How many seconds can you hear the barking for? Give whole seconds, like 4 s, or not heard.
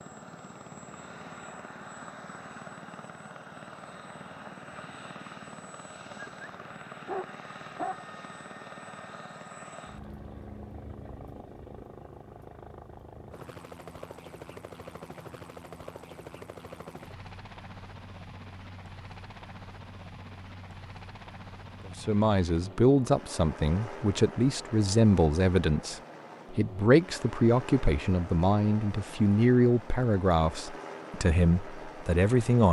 2 s.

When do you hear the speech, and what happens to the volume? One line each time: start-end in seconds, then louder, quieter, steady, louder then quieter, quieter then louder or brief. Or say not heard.
21.9-32.6 steady.